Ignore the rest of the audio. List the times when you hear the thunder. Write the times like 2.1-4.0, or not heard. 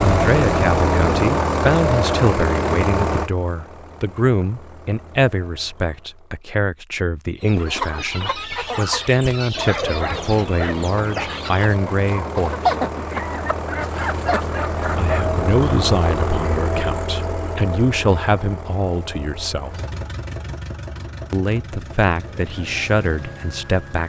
not heard.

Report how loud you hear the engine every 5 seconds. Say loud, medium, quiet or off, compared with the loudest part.
loud, quiet, medium, medium, quiet.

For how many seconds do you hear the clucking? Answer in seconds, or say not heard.
8 s.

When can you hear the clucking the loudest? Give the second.
13 s.